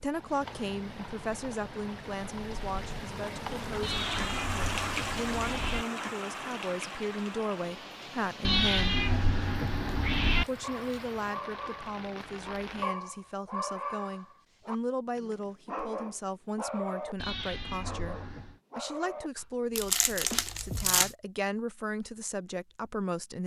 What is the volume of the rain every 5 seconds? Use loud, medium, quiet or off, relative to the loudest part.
loud, loud, medium, off, off.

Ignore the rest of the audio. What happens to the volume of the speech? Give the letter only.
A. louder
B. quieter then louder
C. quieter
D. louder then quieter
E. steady
E.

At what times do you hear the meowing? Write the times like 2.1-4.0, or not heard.
3.8-5.8, 8.4-10.4, 17.1-18.6.